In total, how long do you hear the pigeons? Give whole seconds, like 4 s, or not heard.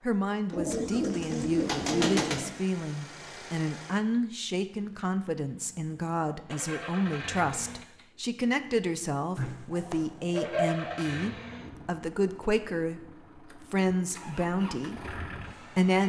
4 s.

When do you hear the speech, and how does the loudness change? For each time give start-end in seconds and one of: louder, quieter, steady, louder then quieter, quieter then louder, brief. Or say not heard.
0.0-16.0 steady.